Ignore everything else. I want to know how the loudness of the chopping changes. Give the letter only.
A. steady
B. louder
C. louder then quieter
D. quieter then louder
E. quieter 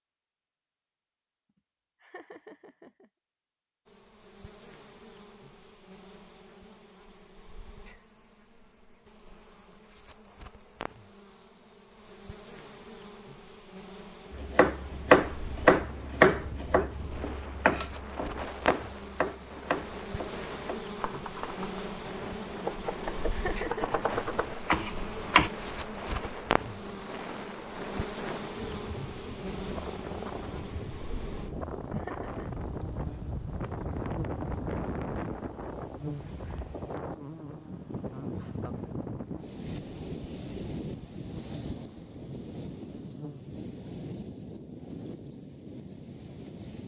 D.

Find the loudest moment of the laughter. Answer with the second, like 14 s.
24 s.